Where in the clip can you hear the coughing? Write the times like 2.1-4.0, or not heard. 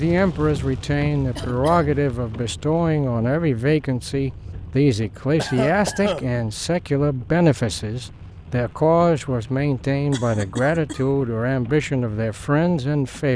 1.4-1.9, 5.3-6.3, 10.1-11.1.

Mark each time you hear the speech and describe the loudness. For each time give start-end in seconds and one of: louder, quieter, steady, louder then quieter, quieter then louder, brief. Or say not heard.
0.0-13.3 steady.